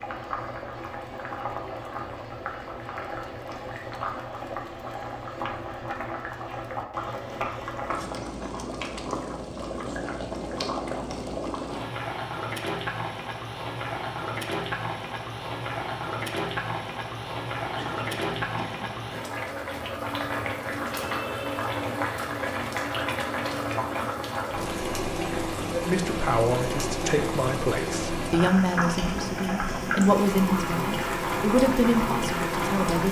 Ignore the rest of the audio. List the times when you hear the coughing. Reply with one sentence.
You can hear the coughing from 17.8 to 18.9 s.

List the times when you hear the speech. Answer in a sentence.
The speech can be heard from 25.7 to 33.0 s.